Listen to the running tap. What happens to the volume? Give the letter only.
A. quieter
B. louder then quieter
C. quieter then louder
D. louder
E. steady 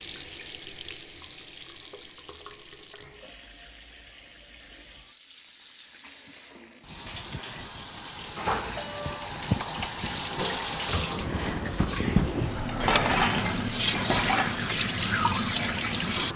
D.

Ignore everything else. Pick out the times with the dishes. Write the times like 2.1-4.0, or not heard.
12.7-14.6.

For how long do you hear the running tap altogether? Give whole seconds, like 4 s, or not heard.
16 s.